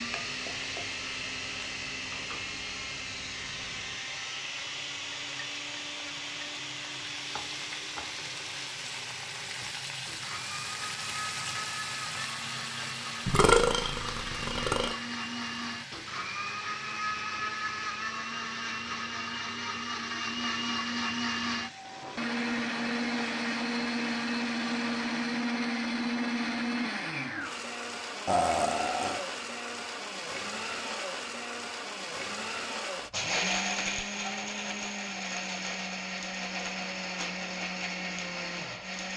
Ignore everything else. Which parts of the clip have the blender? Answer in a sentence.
You can hear the blender from 0.0 to 39.1 s.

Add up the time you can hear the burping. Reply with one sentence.
The burping can be heard for 3 seconds in total.